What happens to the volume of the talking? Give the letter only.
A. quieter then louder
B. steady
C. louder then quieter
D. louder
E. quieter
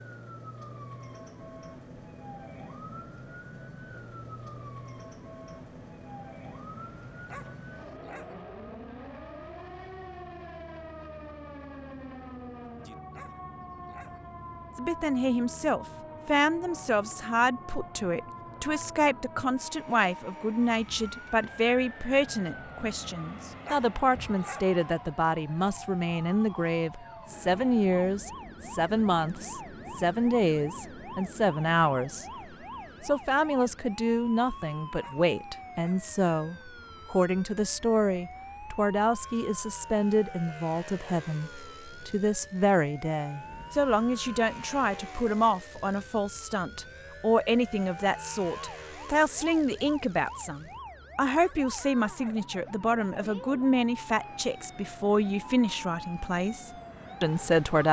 B.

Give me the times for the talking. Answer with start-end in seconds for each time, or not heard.
14.8-32.2, 33.0-57.8.